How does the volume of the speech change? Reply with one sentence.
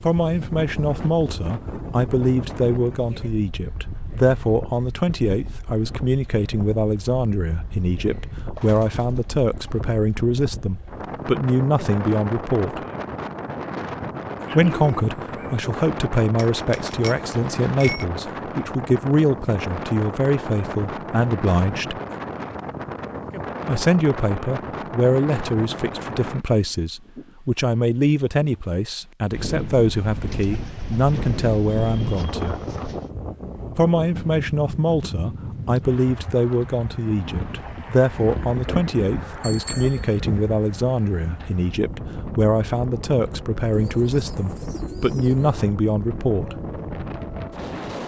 The volume of the speech stays about the same.